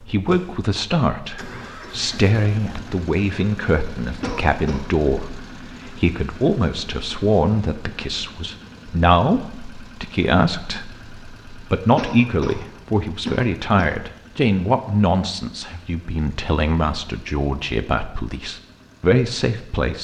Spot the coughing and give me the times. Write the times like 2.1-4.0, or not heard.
4.2-4.8, 11.9-13.9.